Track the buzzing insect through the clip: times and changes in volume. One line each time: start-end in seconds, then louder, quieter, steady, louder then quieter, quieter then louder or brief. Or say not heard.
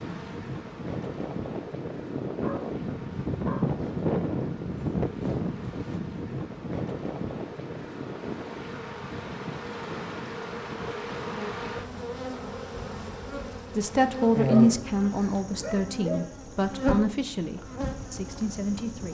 0.0-19.0 louder.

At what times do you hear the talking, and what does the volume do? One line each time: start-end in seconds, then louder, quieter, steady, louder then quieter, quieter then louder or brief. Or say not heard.
13.8-19.0 quieter.